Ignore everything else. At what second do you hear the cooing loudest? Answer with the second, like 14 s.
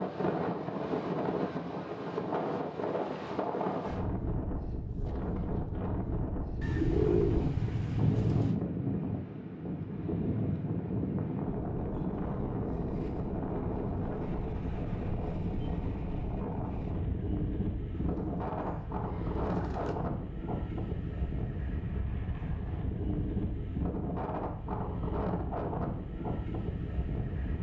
7 s.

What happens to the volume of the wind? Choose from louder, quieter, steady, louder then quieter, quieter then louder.
steady.